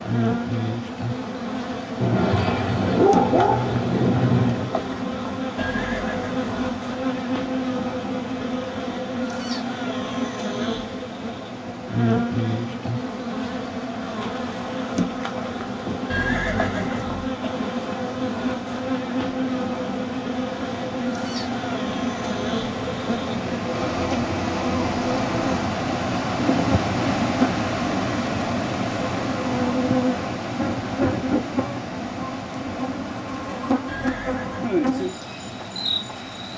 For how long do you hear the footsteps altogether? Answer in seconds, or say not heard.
not heard.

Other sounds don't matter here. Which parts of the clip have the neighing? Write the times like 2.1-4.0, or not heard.
5.5-6.5, 16.1-17.3, 33.9-34.8.